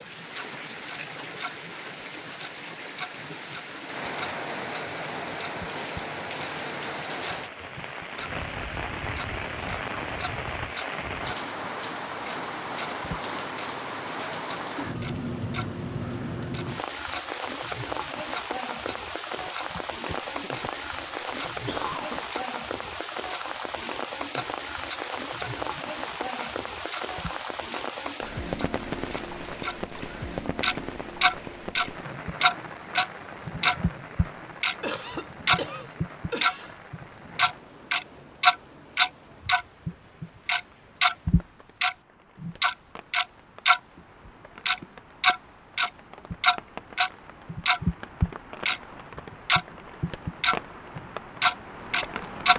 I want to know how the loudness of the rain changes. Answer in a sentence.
The loudness of the rain goes down.